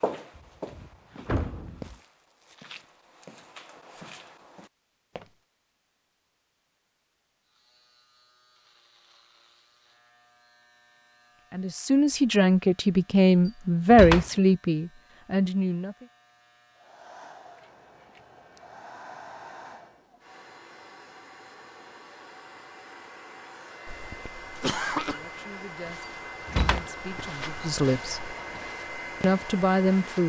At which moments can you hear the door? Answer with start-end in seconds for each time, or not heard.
0.3-1.9, 13.9-14.3, 26.4-26.9.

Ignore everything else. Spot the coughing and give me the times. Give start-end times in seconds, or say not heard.
23.9-25.2.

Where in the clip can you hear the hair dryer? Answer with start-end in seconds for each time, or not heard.
16.8-30.2.